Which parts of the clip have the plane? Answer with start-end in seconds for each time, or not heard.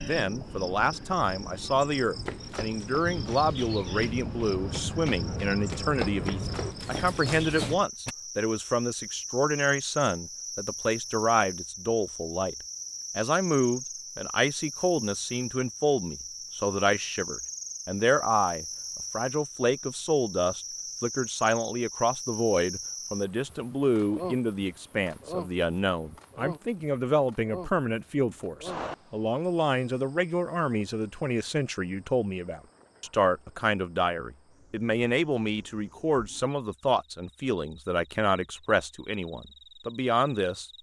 3.0-6.8.